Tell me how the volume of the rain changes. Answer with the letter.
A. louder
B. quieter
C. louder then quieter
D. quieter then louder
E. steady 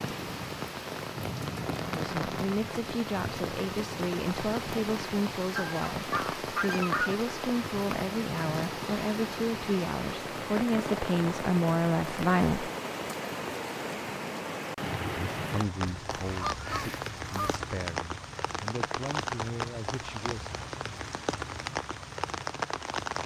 E.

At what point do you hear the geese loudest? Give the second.
7 s.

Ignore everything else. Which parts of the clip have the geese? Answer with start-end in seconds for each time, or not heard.
5.5-7.2, 15.8-17.6.